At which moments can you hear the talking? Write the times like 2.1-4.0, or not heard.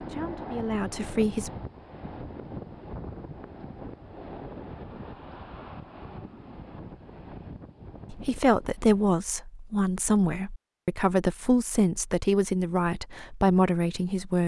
0.0-1.5, 8.1-14.4.